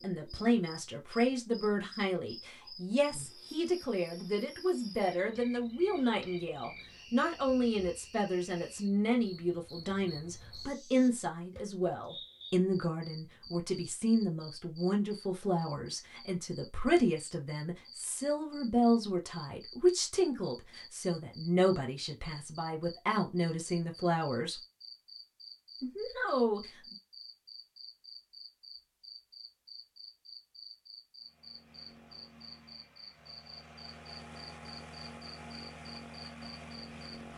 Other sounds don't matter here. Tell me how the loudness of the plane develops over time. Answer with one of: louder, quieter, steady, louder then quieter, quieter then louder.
louder.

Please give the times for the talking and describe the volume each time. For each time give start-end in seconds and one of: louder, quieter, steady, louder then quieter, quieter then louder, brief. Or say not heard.
0.0-24.6 steady
25.8-26.6 brief.